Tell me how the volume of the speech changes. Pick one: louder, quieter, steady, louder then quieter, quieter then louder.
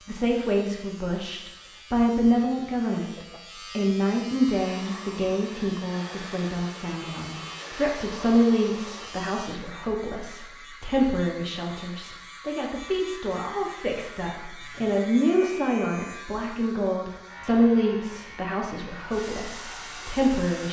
steady.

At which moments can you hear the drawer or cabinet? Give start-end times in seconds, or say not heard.
not heard.